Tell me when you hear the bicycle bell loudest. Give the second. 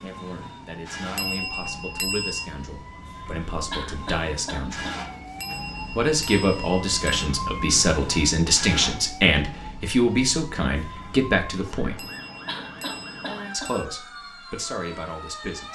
2 s.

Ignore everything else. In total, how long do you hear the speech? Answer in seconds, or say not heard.
13 s.